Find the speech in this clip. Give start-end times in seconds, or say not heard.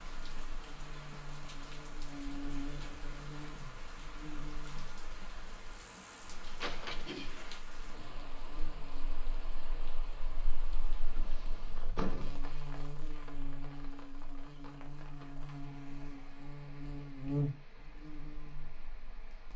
not heard.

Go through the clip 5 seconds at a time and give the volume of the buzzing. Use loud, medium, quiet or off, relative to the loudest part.
medium, quiet, medium, loud.